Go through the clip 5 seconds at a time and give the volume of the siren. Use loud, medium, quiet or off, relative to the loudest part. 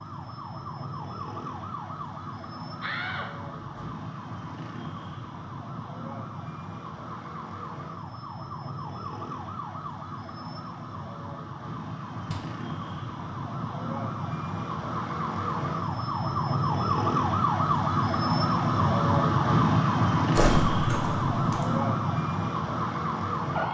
quiet, quiet, medium, loud, loud.